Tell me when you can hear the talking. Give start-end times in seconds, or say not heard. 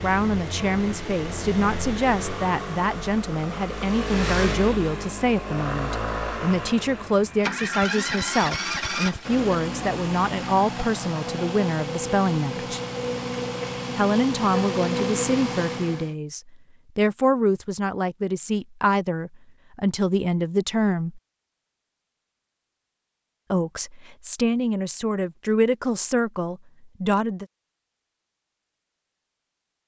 0.0-12.8, 13.9-21.2, 23.5-27.4.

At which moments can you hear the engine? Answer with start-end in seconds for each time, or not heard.
0.0-16.1.